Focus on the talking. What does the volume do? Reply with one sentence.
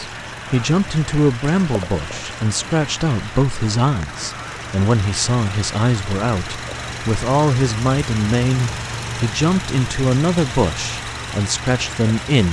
The loudness of the talking stays about the same.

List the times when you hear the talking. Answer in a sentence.
The talking can be heard from 0.0 to 12.4 s.